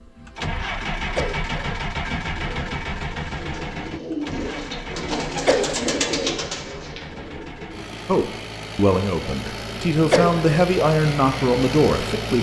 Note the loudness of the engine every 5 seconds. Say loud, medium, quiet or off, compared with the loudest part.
loud, medium, loud.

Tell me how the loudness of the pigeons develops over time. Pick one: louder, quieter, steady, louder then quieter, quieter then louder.
louder then quieter.